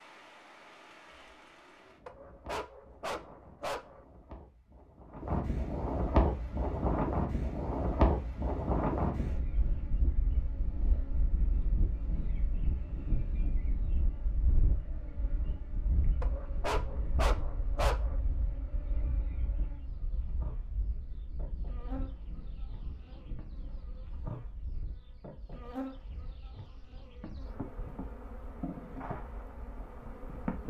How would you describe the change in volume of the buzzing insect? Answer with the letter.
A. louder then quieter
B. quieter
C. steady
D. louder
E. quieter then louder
D.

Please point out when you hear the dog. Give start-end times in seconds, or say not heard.
2.0-4.0, 16.2-18.2.